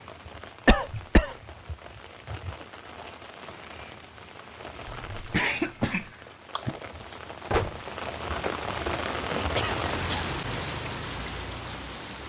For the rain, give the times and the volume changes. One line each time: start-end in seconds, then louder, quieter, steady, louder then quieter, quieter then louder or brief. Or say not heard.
0.0-12.2 louder.